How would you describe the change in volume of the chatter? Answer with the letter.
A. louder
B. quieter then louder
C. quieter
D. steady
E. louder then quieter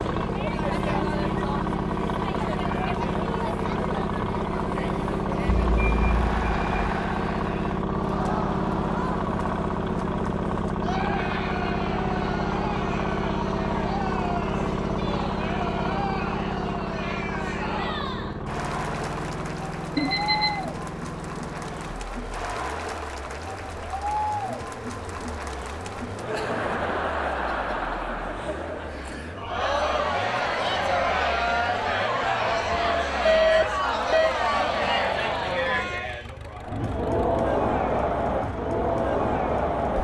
A.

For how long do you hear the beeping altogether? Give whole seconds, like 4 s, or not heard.
3 s.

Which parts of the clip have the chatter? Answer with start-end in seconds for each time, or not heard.
0.0-39.9.